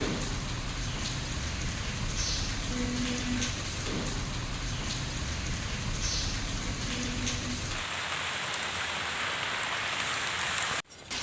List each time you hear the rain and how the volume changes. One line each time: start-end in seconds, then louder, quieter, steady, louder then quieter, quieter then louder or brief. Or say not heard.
0.0-11.1 steady.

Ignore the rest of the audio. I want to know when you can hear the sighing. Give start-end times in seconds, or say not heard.
2.7-3.5, 6.9-7.6.